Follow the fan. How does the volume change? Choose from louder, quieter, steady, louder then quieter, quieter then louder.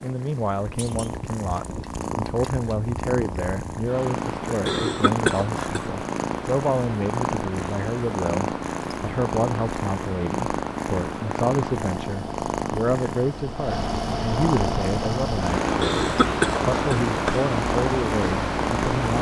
louder.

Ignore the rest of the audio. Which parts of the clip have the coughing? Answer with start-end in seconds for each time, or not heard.
4.7-6.2, 15.8-17.4.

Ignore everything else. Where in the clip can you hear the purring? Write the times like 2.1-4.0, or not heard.
0.0-19.1.